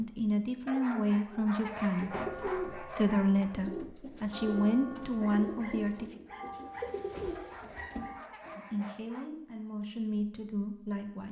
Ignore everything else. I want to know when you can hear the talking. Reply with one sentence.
You can hear the talking from 0.0 to 6.2 s and from 8.6 to 11.2 s.